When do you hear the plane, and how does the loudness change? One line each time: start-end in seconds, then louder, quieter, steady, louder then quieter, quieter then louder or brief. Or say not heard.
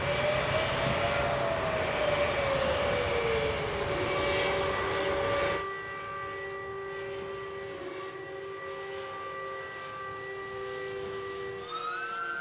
0.0-12.3 quieter.